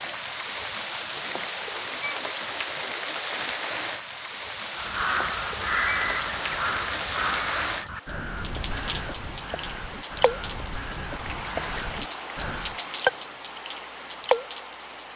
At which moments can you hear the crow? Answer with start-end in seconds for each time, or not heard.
4.7-12.8.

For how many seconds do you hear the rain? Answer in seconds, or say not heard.
15 s.